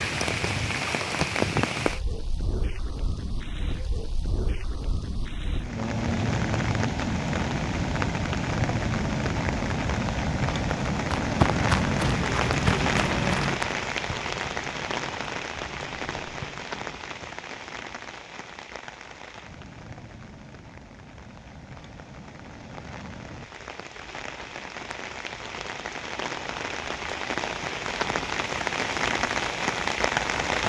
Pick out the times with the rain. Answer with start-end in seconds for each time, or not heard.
0.0-30.6.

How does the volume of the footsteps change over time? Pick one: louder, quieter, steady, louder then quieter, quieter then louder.
quieter.